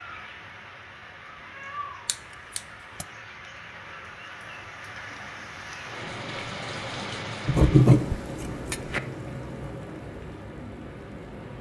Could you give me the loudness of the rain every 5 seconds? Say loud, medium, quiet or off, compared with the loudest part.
medium, loud, medium.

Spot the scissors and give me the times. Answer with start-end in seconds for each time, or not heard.
2.0-3.0, 7.5-9.0.